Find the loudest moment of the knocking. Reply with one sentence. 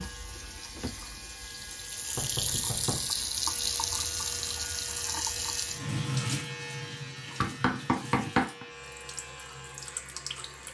The volume of the knocking peaks at 8 seconds.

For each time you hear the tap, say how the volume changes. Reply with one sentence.
You can hear the tap from 0.0 to 10.6 s, getting louder then quieter.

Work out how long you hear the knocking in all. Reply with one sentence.
The knocking can be heard for 2 seconds in total.